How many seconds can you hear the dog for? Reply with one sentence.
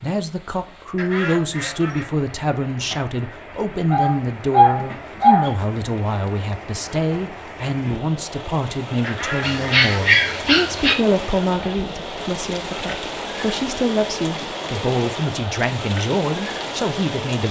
You can hear the dog for 3 seconds altogether.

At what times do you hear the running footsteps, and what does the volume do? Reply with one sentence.
The running footsteps can't be heard in this clip.